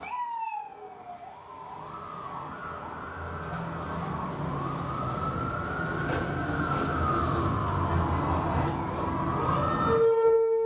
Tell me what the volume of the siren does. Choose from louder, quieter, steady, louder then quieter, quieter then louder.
louder.